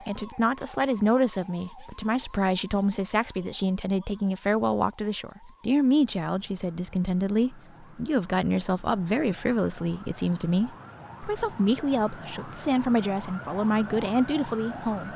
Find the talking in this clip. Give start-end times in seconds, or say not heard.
0.1-15.1.